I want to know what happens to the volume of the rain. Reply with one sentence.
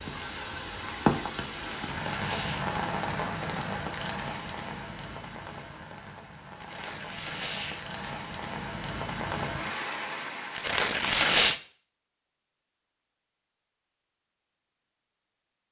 The volume of the rain goes down, then up.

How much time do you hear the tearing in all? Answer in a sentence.
The tearing can be heard for 4 seconds in total.